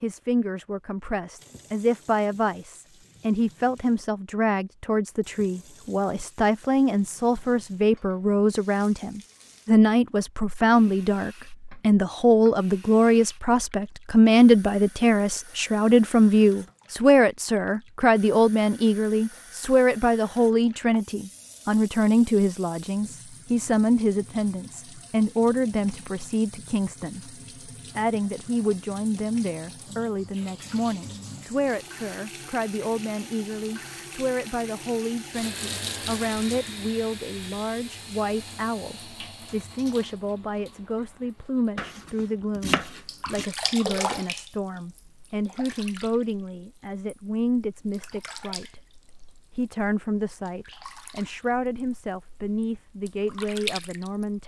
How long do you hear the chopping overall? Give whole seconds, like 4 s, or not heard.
2 s.